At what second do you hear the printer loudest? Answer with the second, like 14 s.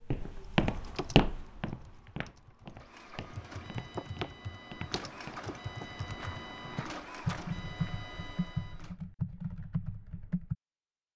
7 s.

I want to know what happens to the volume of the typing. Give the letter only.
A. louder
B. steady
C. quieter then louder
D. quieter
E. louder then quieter
A.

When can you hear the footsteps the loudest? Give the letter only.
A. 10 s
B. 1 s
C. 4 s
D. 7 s
B.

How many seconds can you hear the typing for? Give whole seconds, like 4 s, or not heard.
10 s.